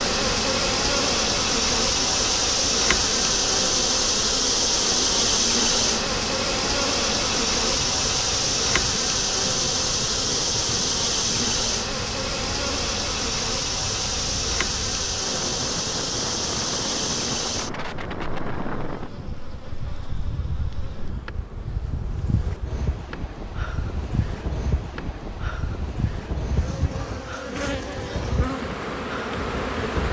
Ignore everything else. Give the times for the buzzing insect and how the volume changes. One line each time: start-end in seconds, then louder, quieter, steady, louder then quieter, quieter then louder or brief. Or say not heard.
0.0-30.0 quieter then louder.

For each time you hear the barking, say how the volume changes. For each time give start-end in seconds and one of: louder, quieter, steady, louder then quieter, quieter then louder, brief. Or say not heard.
not heard.